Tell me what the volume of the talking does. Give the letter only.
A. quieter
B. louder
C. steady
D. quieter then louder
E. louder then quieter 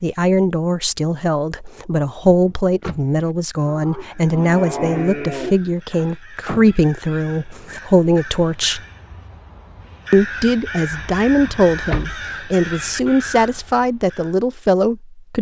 C.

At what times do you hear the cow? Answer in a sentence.
The cow can be heard from 3.6 to 5.5 s.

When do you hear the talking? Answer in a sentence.
You can hear the talking from 0.0 to 8.8 s and from 10.1 to 15.3 s.